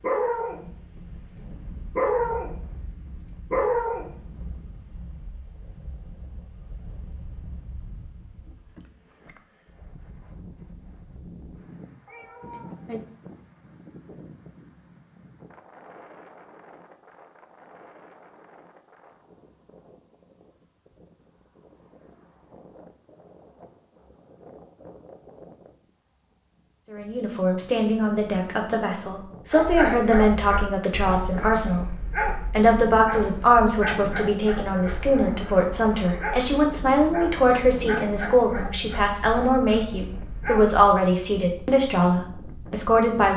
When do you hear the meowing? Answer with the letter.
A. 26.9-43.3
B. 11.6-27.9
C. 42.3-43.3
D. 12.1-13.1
D.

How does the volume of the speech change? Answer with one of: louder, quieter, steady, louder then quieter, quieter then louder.
steady.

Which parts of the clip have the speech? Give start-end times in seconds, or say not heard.
26.9-43.3.